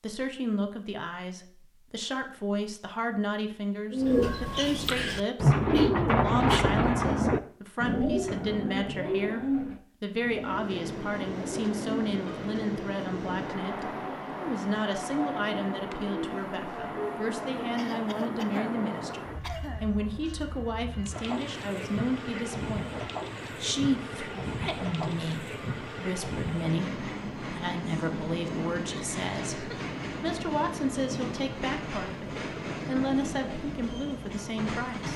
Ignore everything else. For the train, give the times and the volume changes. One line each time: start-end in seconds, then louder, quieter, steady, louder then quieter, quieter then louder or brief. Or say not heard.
10.3-35.1 steady.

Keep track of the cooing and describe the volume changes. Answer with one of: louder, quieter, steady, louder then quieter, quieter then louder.
quieter.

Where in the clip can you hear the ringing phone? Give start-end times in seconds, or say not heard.
not heard.